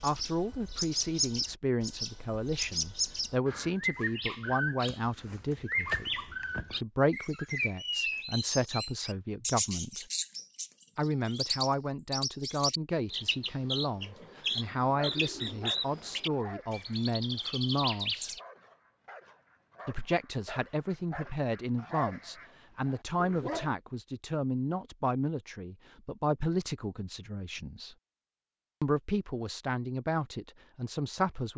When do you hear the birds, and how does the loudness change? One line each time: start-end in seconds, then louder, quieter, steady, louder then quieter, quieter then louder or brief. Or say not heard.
0.0-18.4 steady.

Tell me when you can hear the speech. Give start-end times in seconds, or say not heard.
0.0-10.1, 10.9-18.3, 19.9-27.9, 28.8-31.5.